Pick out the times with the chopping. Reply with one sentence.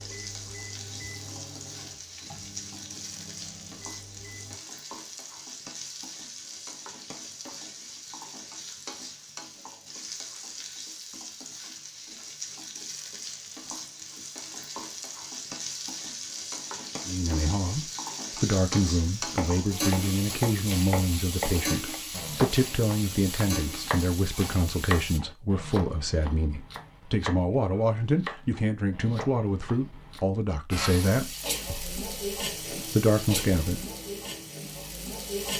The chopping can be heard from 19.2 to 30.2 s.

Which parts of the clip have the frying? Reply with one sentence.
You can hear the frying from 0.0 to 25.2 s and from 30.7 to 35.5 s.